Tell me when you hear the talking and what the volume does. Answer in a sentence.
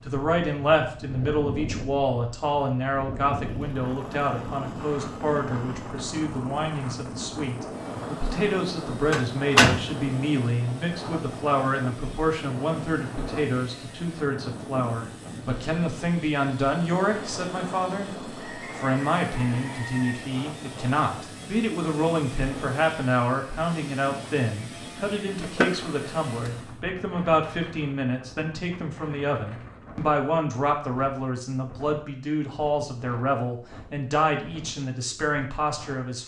The talking can be heard from 0.0 to 36.2 s, at a steady volume.